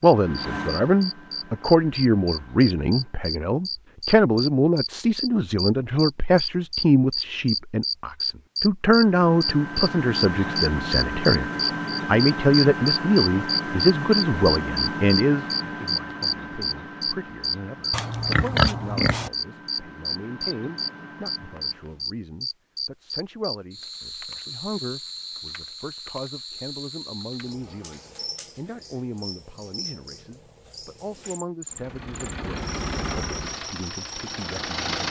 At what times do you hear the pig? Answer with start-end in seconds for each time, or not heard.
17.9-19.3.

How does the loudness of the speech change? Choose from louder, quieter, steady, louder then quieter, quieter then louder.
quieter.